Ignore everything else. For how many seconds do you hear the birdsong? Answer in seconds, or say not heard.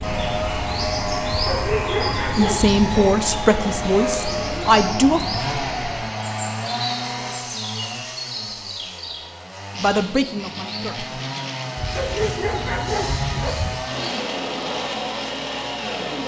16 s.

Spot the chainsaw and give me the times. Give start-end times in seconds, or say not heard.
0.0-16.2.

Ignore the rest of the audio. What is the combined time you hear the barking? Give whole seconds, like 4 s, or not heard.
4 s.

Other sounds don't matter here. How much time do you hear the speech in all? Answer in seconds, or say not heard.
4 s.